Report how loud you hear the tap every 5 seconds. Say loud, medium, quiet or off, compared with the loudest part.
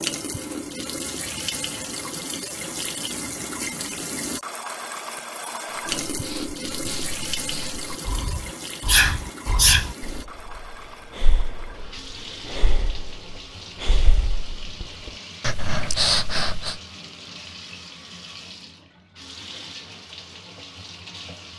loud, loud, medium, medium, medium.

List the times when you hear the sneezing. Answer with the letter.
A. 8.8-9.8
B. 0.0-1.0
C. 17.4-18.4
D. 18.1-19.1
A.